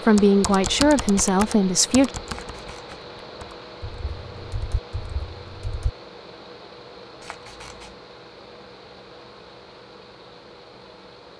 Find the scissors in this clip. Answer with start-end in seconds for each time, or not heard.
2.3-3.0, 7.2-8.0.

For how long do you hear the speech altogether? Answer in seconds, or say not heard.
2 s.